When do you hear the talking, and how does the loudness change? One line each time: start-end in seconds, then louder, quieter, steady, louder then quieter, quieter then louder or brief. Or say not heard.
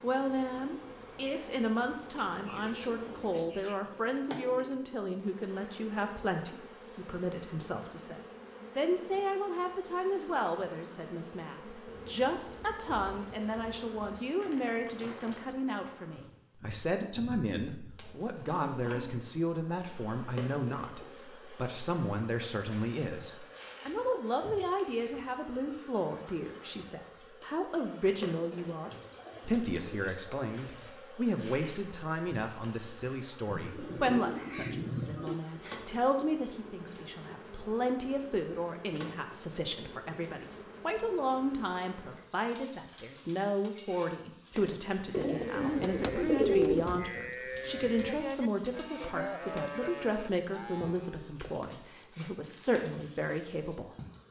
0.0-54.0 steady.